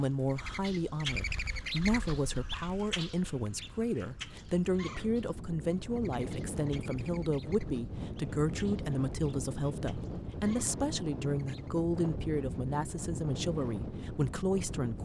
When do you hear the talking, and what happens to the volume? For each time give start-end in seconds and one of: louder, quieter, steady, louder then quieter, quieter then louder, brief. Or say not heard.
0.0-15.0 steady.